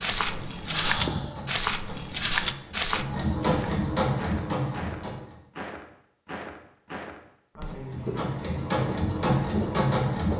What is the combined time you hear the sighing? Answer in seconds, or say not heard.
2 s.